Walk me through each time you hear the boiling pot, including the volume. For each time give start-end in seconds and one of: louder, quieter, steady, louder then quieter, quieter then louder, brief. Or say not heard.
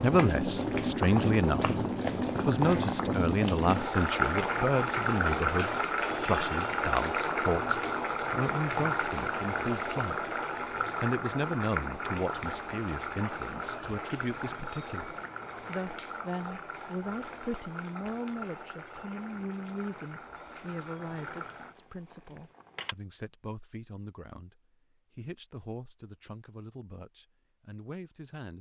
0.0-22.9 quieter.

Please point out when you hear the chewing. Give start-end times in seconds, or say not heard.
not heard.